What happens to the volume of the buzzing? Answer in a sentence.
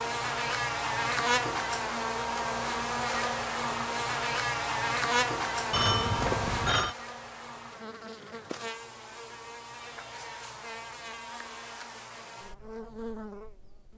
The volume of the buzzing goes down.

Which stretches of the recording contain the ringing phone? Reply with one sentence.
You can hear the ringing phone from 5.7 to 7.0 s.